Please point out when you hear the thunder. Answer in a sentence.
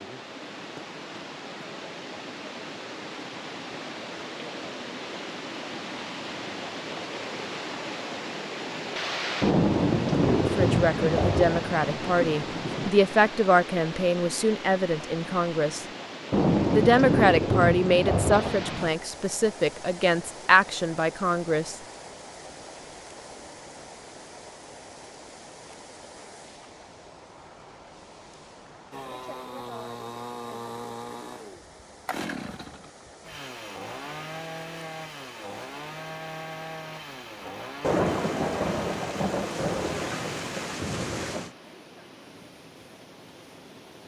The thunder can be heard from 9.4 to 12.9 s, from 16.3 to 18.9 s and from 37.8 to 41.5 s.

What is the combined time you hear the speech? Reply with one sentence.
The speech can be heard for 10 seconds in total.